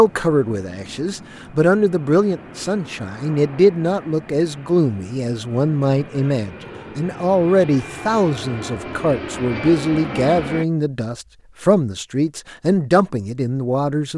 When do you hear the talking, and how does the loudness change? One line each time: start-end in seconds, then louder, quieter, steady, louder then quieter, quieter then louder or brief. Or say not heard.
0.0-14.1 steady.